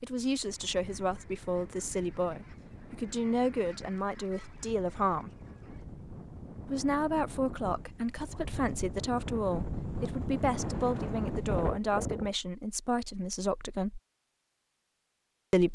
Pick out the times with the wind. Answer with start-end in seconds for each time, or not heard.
0.0-12.3.